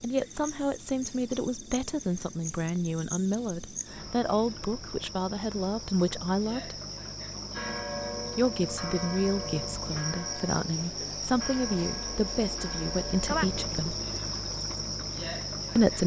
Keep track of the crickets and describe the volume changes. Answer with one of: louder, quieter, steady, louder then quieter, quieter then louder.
louder.